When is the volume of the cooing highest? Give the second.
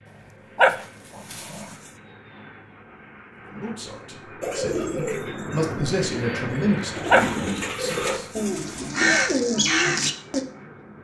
9 s.